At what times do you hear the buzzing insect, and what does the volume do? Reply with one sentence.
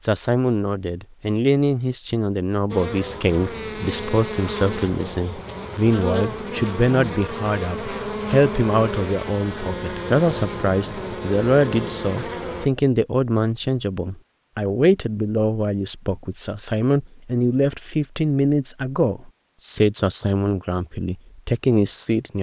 You can hear the buzzing insect from 2.7 to 12.7 s, at a steady volume.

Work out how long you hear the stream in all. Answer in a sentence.
The stream can't be heard in this clip.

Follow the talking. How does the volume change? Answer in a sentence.
The volume of the talking stays about the same.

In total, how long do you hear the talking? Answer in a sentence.
You can hear the talking for 22 seconds altogether.